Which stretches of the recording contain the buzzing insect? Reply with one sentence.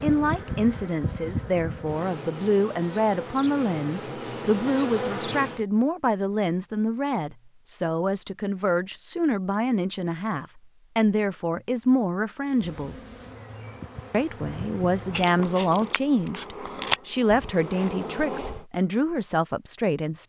The buzzing insect can be heard from 0.0 to 5.7 s and from 12.4 to 18.6 s.